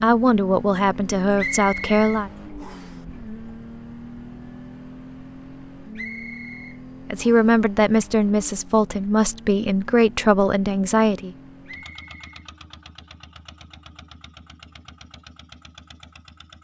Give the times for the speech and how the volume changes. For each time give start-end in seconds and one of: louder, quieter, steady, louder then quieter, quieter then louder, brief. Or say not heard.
0.0-2.3 brief
7.1-11.3 steady.